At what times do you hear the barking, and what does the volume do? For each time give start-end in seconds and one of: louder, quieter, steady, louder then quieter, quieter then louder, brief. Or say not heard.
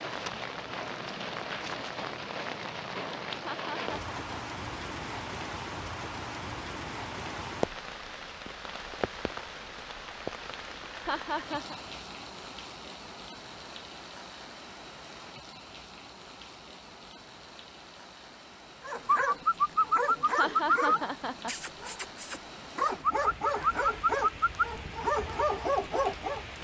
18.8-26.4 steady.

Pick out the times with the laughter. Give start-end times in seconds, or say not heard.
3.3-4.6, 10.9-11.8, 20.2-21.6.